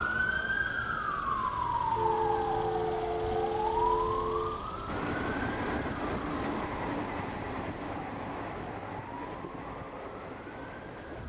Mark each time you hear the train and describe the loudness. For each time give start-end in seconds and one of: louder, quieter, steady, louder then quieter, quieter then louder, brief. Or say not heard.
4.8-11.2 quieter.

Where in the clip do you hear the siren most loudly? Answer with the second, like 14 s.
2 s.